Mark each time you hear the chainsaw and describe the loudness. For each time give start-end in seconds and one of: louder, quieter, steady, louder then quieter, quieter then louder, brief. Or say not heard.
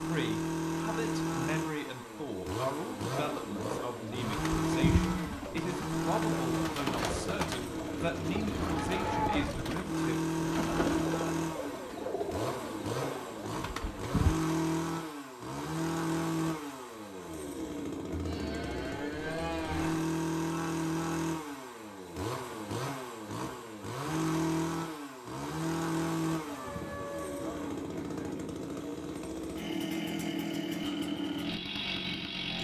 0.0-32.5 steady.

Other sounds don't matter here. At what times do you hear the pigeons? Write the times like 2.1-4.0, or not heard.
3.1-14.3.